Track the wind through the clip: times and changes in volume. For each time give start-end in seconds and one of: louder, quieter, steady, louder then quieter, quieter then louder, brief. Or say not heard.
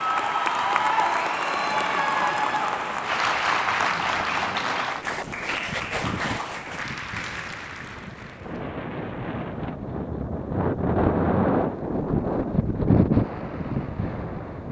0.1-14.6 louder.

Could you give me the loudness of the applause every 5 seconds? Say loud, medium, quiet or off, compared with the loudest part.
loud, medium, off.